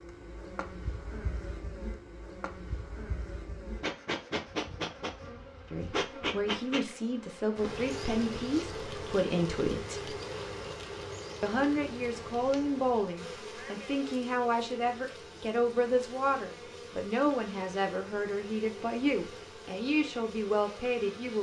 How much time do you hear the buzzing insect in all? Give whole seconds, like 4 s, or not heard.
21 s.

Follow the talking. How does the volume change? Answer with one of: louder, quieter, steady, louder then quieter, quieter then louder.
steady.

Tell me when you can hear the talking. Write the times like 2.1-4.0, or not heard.
5.7-10.2, 11.4-21.3.